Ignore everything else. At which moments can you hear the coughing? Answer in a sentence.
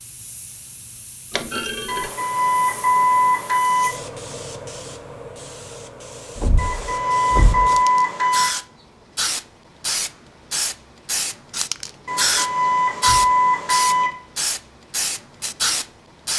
You can't hear the coughing here.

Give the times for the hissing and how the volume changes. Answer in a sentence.
The hissing can be heard from 0.0 to 16.3 s, getting louder.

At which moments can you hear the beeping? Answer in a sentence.
You can hear the beeping from 1.9 to 3.9 s, from 6.5 to 8.5 s and from 12.1 to 14.1 s.